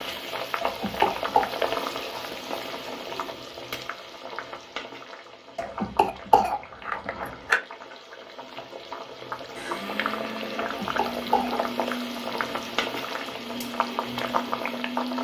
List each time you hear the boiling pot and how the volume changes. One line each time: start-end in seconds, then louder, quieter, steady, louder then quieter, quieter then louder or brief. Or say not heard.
0.0-15.1 quieter then louder.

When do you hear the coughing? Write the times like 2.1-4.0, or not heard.
0.6-1.5, 5.5-7.6, 10.6-11.6.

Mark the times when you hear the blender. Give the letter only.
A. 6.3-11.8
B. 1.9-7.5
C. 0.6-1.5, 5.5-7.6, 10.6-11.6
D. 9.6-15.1
D.